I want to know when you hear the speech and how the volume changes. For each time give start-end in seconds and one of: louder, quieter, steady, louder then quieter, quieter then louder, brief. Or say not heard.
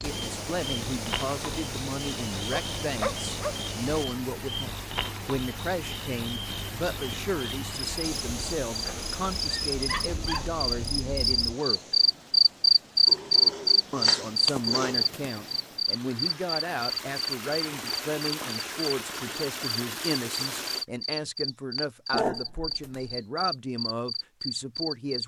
0.0-11.9 steady
13.9-25.2 steady.